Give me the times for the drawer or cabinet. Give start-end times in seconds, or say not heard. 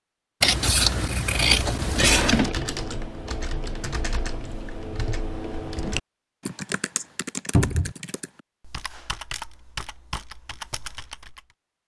2.0-2.5, 7.5-8.0.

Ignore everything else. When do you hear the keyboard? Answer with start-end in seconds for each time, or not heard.
1.6-11.4.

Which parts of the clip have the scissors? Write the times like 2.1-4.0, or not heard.
0.4-2.5.